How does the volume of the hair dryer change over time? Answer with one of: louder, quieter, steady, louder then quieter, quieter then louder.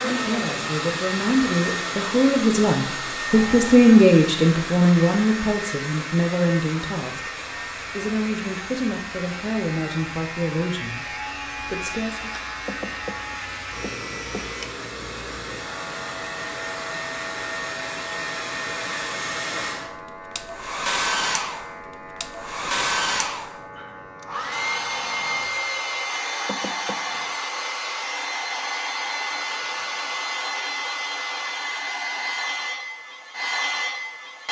quieter then louder.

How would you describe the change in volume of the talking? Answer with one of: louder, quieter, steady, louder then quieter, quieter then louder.
louder then quieter.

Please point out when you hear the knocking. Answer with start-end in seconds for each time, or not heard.
12.7-14.4, 26.4-27.2.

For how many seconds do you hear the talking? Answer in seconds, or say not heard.
12 s.